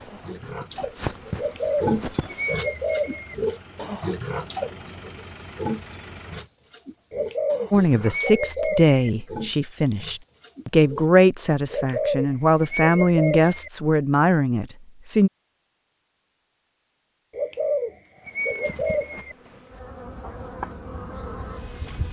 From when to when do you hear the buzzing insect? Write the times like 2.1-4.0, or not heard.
0.0-2.6, 18.1-22.0.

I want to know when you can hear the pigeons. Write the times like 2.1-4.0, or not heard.
1.4-3.4, 7.1-8.9, 11.7-13.7, 17.3-19.4.